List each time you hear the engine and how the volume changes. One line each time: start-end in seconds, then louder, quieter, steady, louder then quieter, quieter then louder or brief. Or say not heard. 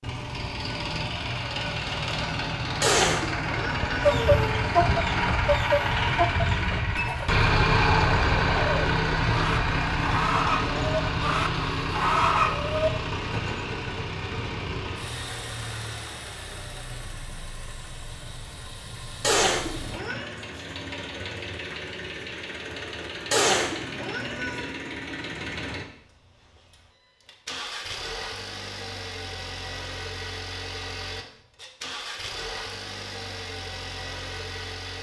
0.0-34.9 quieter.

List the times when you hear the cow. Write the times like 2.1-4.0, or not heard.
not heard.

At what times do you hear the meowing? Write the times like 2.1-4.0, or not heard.
2.8-4.6, 19.2-20.3, 23.3-24.7.